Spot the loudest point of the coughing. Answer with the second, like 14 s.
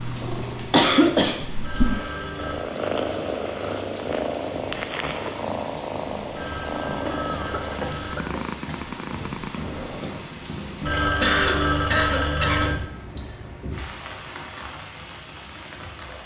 1 s.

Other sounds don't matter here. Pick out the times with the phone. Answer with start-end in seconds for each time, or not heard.
1.6-2.6, 6.3-8.2, 10.8-12.8.